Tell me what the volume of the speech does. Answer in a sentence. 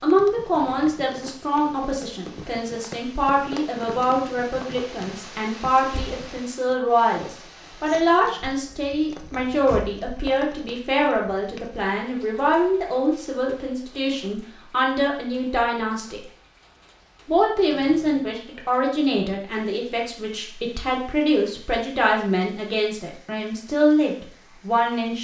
The volume of the speech stays about the same.